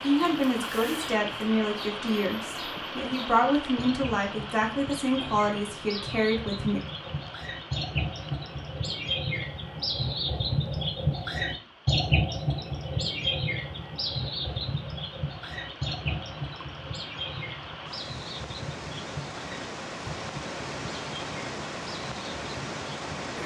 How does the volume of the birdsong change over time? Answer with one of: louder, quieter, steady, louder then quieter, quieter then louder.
louder then quieter.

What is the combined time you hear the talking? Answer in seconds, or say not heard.
7 s.